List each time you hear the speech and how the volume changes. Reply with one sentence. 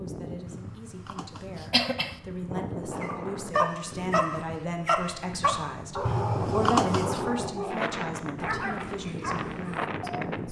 The speech can be heard from 0.0 to 10.4 s, getting louder then quieter.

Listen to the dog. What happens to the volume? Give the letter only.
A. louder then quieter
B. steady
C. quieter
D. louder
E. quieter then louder
C.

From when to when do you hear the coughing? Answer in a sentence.
The coughing can be heard from 0.5 to 2.2 s and from 6.0 to 7.2 s.